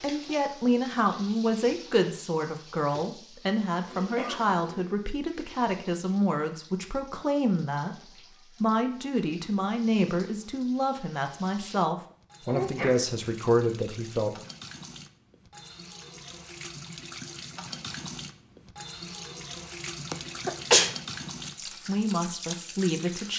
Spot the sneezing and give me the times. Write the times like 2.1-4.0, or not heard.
3.9-4.8, 12.4-13.2, 20.1-20.9.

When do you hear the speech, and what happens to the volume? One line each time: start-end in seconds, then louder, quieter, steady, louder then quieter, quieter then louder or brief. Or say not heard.
0.0-14.3 steady
21.6-23.3 brief.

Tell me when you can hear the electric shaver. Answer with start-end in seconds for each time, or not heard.
not heard.